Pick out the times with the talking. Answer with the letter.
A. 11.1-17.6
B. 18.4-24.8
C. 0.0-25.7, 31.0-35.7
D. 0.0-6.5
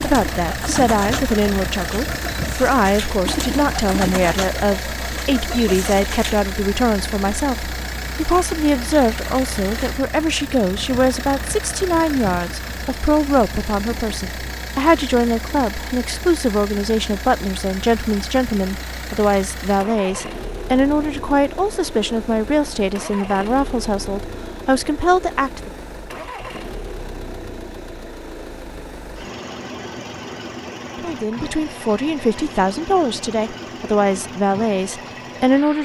C.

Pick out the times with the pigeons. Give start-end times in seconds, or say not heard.
0.0-6.5.